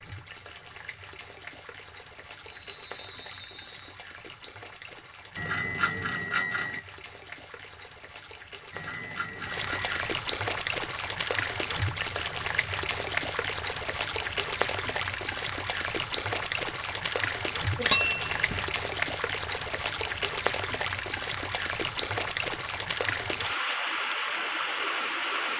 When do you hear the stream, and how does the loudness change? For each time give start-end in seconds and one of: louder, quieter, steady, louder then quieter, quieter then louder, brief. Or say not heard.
0.0-25.5 louder.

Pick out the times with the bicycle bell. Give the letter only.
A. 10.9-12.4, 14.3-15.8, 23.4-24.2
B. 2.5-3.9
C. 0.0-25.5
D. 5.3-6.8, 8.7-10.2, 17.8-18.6
D.